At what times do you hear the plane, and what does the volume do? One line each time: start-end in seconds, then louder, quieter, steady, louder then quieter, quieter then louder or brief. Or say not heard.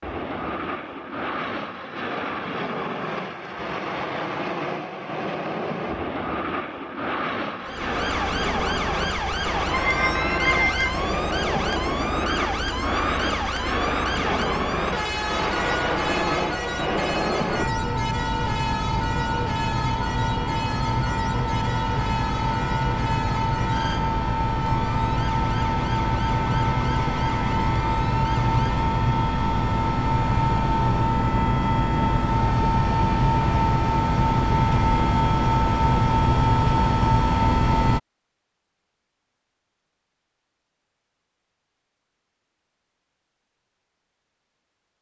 0.0-38.0 louder.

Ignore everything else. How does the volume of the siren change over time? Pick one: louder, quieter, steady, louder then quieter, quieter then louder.
quieter.